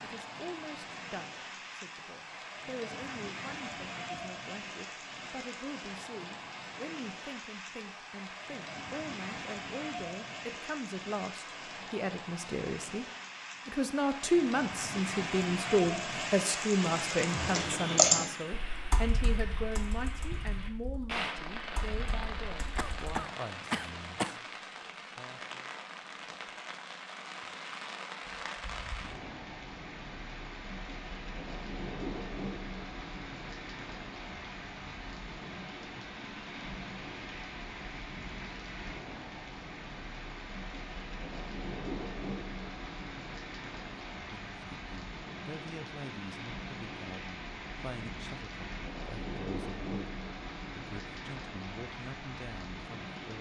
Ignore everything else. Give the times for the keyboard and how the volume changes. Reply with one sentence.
The keyboard can be heard from 16.9 to 23.2 s, getting quieter then louder.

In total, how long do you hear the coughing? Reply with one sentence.
You can hear the coughing for 2 seconds altogether.